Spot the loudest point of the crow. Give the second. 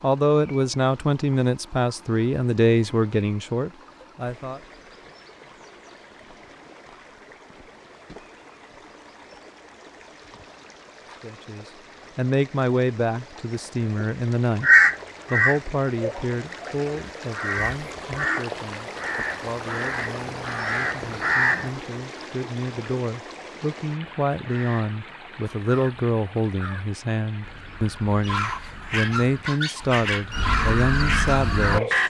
15 s.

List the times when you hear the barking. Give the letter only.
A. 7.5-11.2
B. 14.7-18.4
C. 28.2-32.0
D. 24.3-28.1
C.